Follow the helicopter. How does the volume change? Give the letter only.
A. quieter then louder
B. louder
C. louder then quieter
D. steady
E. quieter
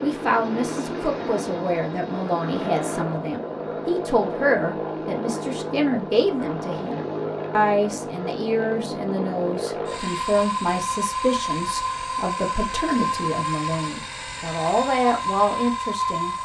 D.